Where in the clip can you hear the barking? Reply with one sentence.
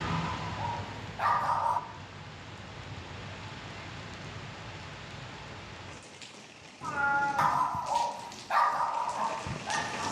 The barking can be heard from 0.0 to 1.8 s and from 7.3 to 10.0 s.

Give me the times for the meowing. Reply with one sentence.
You can hear the meowing from 6.8 to 7.6 s.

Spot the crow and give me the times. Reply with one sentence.
The crow can't be heard in this clip.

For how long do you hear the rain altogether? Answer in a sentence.
The rain can be heard for 10 seconds in total.